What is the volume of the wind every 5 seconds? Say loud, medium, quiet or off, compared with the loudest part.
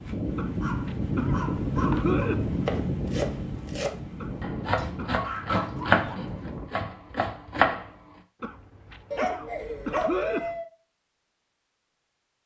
loud, medium, off.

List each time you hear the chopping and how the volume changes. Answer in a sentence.
You can hear the chopping from 2.6 to 7.9 s, getting louder then quieter.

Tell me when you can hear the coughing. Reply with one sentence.
The coughing can be heard from 0.3 to 2.5 s, from 4.2 to 5.2 s and from 8.4 to 10.6 s.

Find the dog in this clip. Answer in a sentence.
You can hear the dog from 0.6 to 2.3 s, from 4.7 to 6.2 s and from 9.1 to 10.7 s.